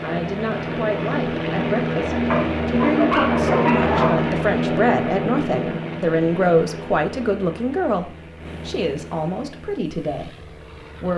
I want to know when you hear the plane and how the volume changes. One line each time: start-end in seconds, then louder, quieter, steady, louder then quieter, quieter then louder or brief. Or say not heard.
0.0-11.1 quieter.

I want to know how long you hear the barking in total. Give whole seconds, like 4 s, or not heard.
2 s.